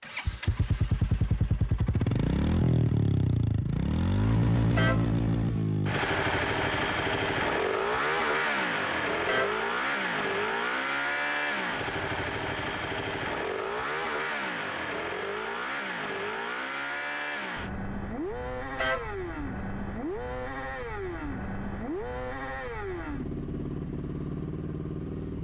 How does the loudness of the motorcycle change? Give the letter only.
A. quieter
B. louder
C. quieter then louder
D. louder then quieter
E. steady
A.